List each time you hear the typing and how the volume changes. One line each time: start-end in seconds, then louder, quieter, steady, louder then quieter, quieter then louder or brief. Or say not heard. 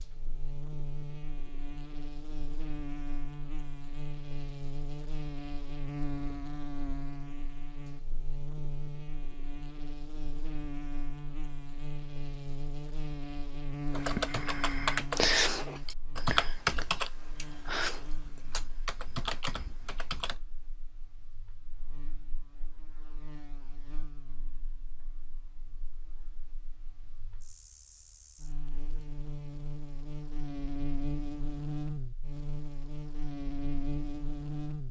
13.9-20.4 quieter.